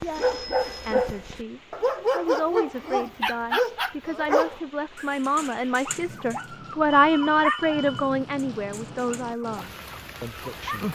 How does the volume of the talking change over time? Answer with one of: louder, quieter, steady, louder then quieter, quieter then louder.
louder then quieter.